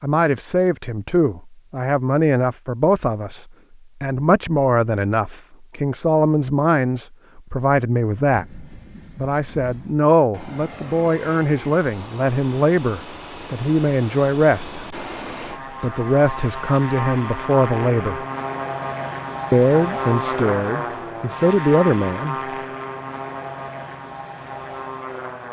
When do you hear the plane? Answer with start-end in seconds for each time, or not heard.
8.3-25.4.